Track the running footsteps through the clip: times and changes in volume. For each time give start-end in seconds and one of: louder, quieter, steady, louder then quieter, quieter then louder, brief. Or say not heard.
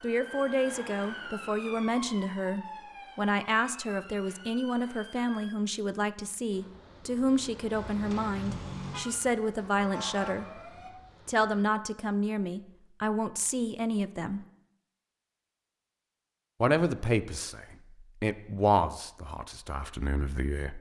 not heard.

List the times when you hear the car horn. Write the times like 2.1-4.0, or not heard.
7.7-9.1.